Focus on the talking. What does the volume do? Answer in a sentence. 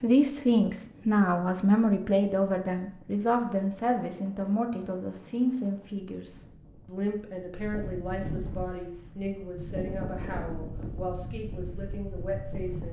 The loudness of the talking goes down.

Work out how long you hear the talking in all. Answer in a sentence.
The talking can be heard for 13 seconds in total.